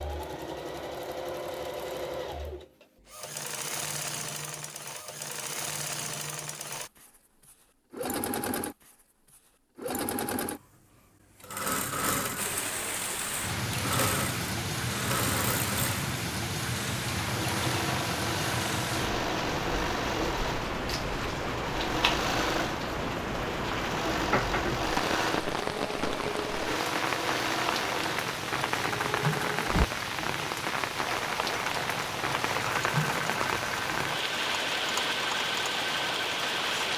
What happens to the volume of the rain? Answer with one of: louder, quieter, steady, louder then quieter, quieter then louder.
steady.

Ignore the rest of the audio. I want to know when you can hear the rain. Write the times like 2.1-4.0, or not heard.
12.3-36.9.